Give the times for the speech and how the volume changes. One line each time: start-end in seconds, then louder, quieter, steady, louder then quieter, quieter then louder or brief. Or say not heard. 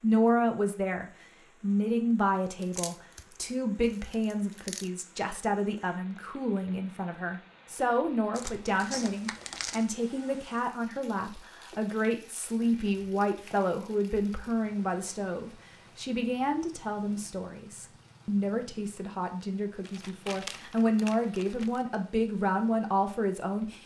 0.0-23.8 steady.